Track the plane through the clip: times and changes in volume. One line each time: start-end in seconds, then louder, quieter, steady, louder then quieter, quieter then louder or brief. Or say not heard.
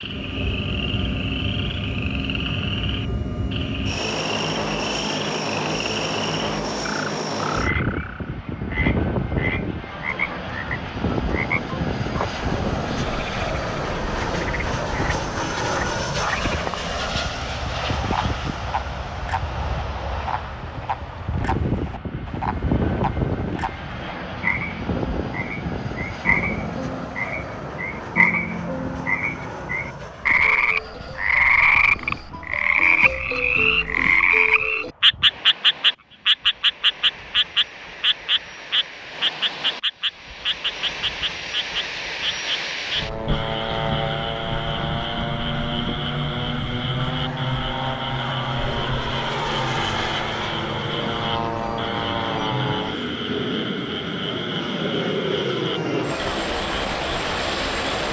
0.0-58.0 quieter then louder.